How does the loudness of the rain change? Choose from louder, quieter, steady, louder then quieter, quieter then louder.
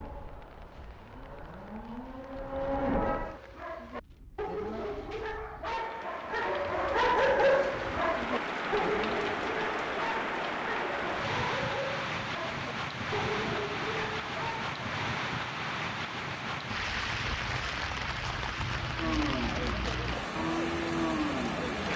louder.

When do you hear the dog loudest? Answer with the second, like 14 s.
7 s.